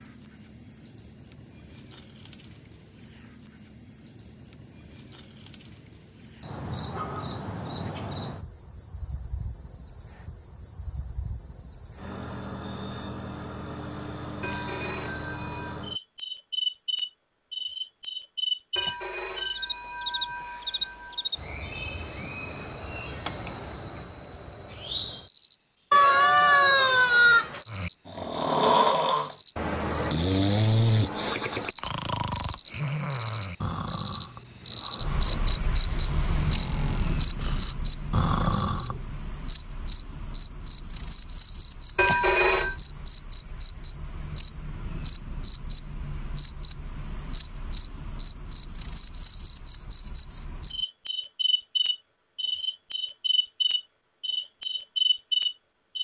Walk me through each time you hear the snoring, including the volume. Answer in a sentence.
The snoring can be heard from 27.6 to 39.1 s, getting quieter then louder.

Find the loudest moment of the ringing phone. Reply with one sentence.
The loudest moment of the ringing phone is at 42 seconds.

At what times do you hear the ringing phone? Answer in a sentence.
You can hear the ringing phone from 14.4 to 15.8 s, from 18.8 to 21.3 s and from 42.0 to 42.8 s.